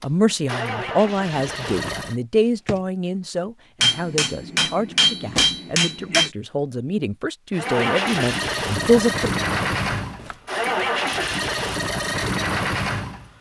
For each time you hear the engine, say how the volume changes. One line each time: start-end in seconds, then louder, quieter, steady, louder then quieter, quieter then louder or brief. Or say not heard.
0.0-2.1 brief
7.5-13.3 steady.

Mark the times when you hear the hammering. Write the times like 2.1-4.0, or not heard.
3.8-6.3.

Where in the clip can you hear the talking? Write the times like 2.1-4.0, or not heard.
0.0-9.3.